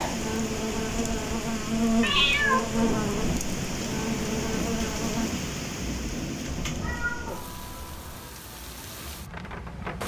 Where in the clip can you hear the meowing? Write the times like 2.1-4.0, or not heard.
2.0-2.8, 6.5-8.2.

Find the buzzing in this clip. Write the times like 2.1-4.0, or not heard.
0.0-5.3.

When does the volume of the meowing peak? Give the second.
2 s.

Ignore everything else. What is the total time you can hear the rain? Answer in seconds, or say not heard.
10 s.